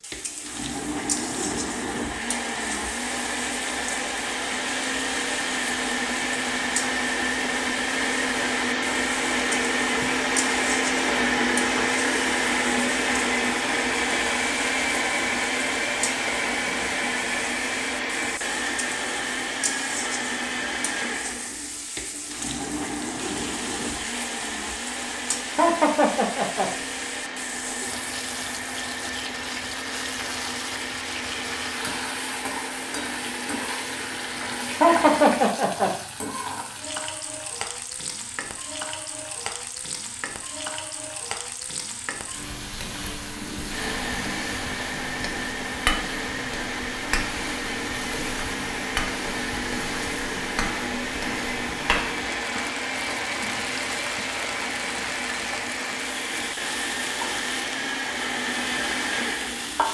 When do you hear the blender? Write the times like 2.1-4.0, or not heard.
0.1-35.5, 43.5-59.8.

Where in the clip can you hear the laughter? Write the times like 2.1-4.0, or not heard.
25.6-26.7, 34.8-36.0.